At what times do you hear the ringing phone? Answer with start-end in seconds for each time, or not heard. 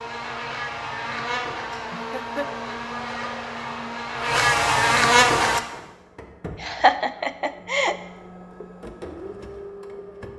not heard.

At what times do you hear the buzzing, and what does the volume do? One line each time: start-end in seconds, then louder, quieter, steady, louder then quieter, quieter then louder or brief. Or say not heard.
0.0-5.6 louder.